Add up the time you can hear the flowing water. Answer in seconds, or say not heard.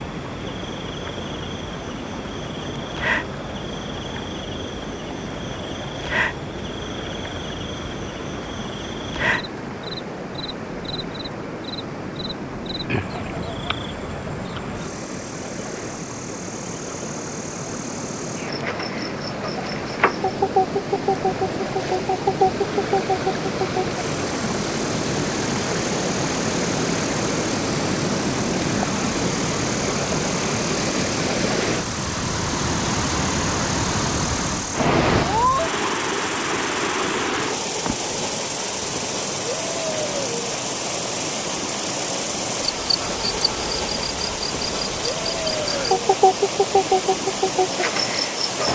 49 s.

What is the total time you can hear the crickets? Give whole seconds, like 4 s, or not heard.
49 s.